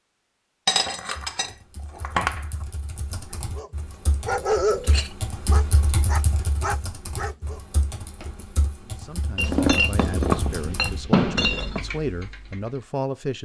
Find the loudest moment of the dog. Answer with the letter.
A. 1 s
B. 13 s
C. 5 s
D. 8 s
C.